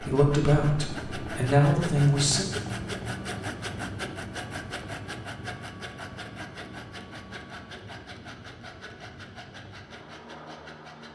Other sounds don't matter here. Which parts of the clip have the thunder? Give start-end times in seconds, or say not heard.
not heard.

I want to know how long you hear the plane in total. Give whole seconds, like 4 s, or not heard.
11 s.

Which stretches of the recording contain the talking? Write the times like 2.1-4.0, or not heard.
0.0-2.5.